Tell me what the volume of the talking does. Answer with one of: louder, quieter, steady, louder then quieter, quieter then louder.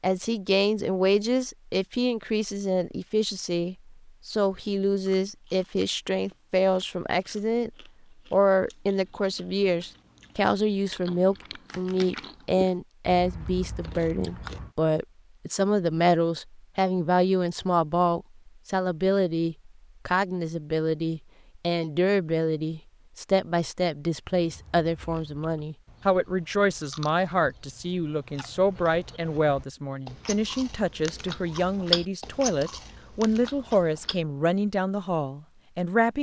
steady.